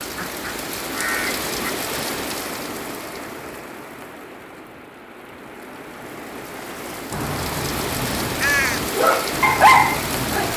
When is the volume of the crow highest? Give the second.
9 s.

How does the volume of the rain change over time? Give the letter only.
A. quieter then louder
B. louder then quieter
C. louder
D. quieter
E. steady
A.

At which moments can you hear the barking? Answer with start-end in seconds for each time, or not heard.
8.9-10.5.